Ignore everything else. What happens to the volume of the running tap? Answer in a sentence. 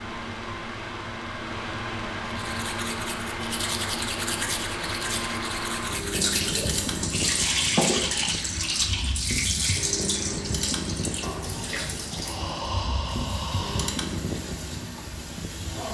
The loudness of the running tap goes down.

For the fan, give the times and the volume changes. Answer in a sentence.
The fan can be heard from 0.0 to 15.9 s, at a steady volume.